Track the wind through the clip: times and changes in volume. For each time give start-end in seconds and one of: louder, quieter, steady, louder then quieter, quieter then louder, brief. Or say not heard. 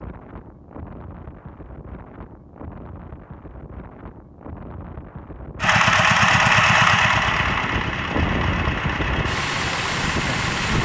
0.0-10.8 louder.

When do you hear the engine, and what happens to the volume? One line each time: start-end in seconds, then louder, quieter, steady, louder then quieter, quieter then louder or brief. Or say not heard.
5.6-10.8 quieter.